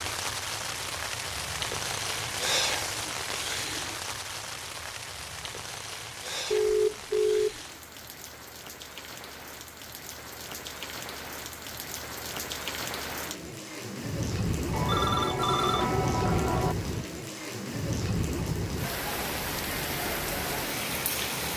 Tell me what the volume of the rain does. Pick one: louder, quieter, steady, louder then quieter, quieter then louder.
quieter then louder.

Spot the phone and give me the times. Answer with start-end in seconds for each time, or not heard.
6.5-7.6, 14.7-16.8.